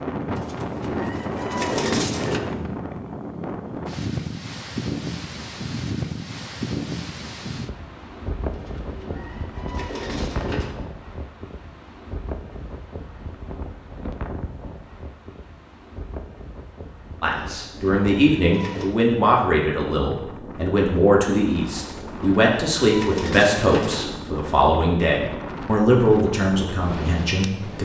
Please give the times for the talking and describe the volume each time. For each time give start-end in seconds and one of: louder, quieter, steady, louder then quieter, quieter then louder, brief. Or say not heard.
17.2-27.8 steady.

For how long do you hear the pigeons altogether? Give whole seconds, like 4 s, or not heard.
8 s.